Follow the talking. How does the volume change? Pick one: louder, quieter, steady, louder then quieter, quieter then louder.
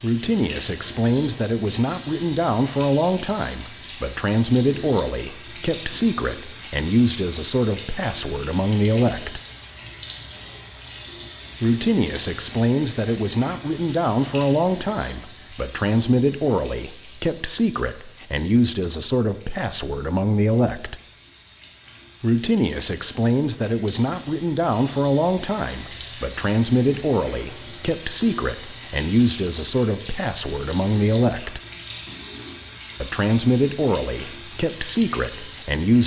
steady.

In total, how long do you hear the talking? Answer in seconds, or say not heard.
31 s.